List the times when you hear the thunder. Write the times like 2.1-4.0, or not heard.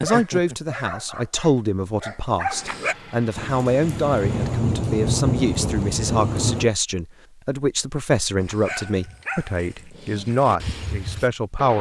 3.4-6.7.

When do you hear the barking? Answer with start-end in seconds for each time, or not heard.
0.0-3.0, 8.4-11.7.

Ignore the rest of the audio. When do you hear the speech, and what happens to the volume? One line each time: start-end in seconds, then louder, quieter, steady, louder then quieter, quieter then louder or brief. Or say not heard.
0.0-11.7 steady.